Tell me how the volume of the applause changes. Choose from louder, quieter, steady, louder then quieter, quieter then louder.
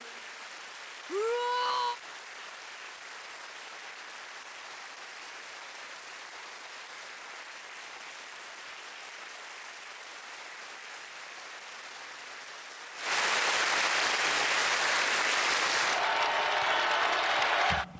louder.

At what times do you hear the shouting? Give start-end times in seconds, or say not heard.
1.1-1.9.